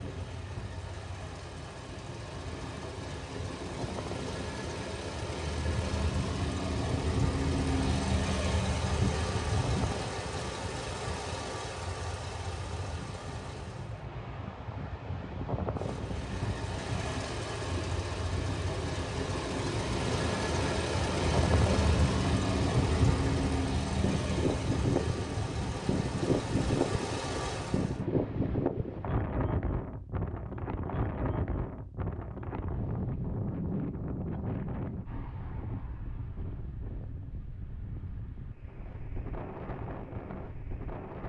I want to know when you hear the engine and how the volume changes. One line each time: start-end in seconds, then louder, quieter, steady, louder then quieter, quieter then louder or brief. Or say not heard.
0.0-14.1 louder then quieter
15.8-28.1 louder then quieter.